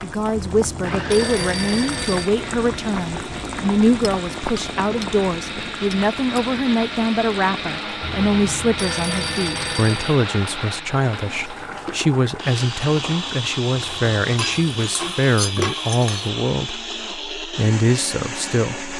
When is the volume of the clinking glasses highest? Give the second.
16 s.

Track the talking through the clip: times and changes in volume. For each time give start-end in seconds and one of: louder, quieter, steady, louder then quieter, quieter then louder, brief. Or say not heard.
0.0-18.9 steady.